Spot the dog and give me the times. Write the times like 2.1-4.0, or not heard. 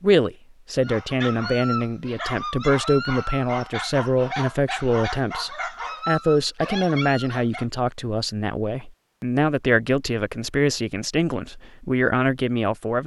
0.8-7.7.